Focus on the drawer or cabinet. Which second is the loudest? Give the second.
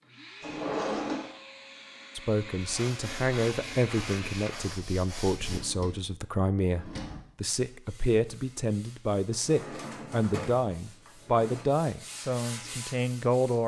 1 s.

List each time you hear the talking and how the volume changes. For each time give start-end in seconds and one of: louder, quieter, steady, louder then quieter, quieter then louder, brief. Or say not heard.
2.1-13.6 steady.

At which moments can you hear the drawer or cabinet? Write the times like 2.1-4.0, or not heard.
0.4-1.4, 5.3-7.2, 9.3-11.7.